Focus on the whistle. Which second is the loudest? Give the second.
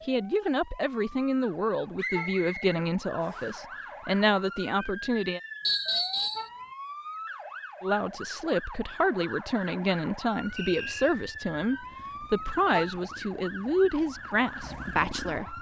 6 s.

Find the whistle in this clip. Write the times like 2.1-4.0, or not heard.
1.9-3.5, 5.7-6.5, 10.6-11.2.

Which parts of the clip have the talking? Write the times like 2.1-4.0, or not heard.
0.1-5.4, 7.8-15.5.